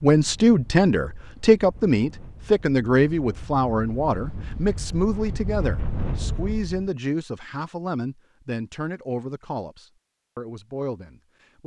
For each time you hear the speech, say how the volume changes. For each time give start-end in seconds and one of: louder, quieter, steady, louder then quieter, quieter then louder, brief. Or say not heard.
0.0-11.6 quieter.